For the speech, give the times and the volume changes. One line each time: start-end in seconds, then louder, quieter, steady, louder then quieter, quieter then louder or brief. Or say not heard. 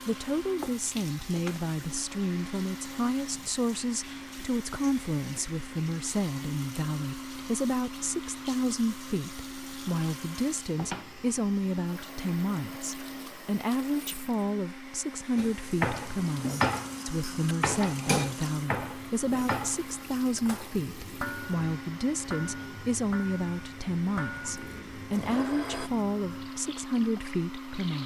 0.1-28.0 steady.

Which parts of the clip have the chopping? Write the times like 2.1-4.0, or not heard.
0.6-1.7.